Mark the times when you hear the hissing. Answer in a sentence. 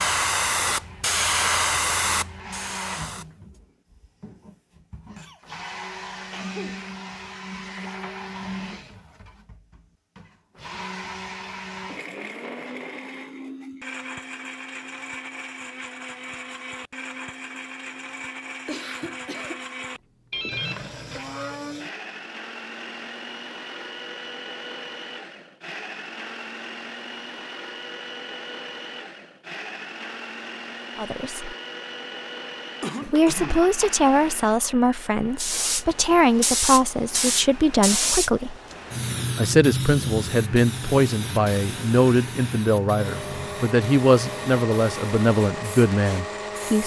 You can hear the hissing from 0.0 to 3.4 s and from 35.4 to 46.8 s.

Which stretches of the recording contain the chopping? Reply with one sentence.
The chopping can't be heard in this clip.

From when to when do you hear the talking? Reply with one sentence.
You can hear the talking from 30.9 to 31.6 s, from 33.0 to 38.5 s and from 39.4 to 46.8 s.